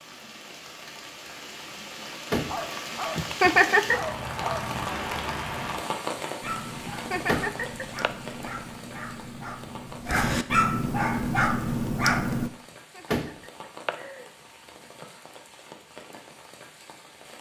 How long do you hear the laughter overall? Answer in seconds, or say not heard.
4 s.